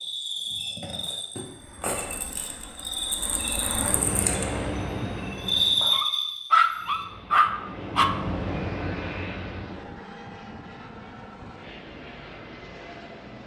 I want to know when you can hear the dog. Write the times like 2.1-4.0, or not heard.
5.8-8.2.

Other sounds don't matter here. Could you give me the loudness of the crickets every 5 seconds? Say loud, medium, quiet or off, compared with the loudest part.
medium, loud, off.